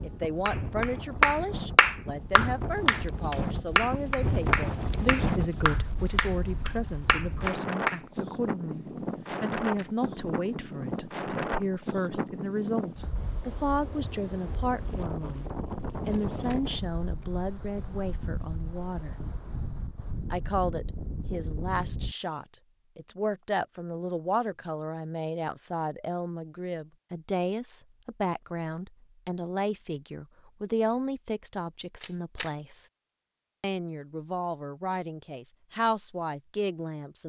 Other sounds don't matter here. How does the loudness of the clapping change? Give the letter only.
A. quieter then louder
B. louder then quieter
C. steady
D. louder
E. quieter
E.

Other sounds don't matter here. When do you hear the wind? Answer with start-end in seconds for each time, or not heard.
0.0-22.1.